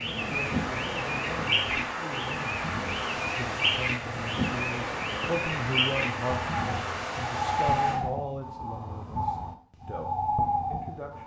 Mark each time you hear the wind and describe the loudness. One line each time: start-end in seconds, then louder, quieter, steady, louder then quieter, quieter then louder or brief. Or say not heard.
0.0-8.0 steady.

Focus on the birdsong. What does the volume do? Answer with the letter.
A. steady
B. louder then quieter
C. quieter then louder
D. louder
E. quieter
A.